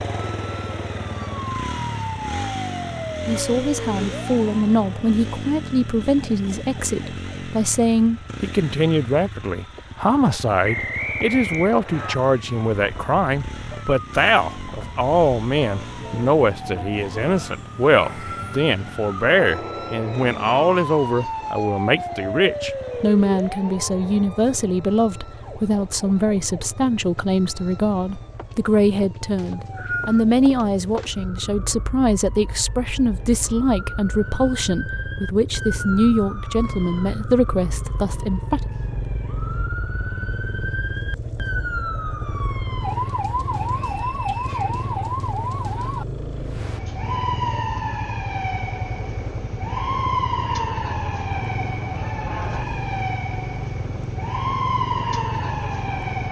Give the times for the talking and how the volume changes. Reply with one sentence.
You can hear the talking from 3.2 to 38.6 s, at a steady volume.